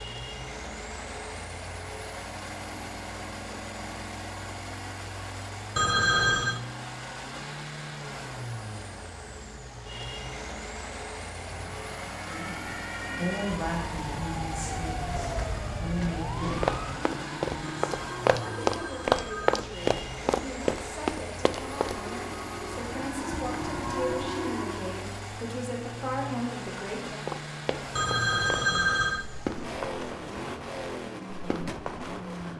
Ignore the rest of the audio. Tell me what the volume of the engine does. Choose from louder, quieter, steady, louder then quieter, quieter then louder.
steady.